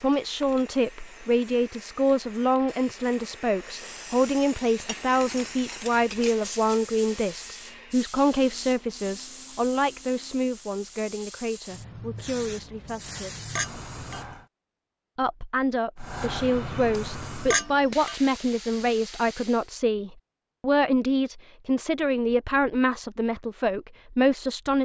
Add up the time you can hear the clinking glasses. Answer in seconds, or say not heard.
3 s.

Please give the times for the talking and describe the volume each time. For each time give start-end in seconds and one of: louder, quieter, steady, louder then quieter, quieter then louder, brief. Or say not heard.
0.0-13.5 quieter
15.2-24.8 steady.